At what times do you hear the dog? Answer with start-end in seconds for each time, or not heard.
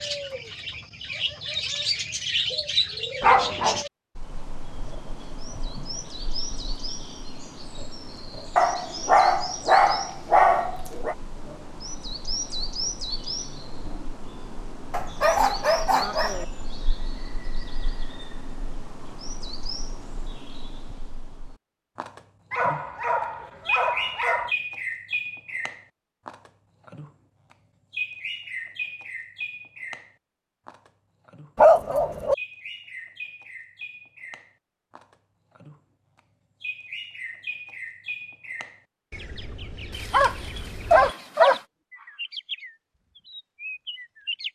3.2-3.9, 8.6-11.2, 14.9-16.4, 22.5-24.5, 31.6-32.4, 39.9-41.6.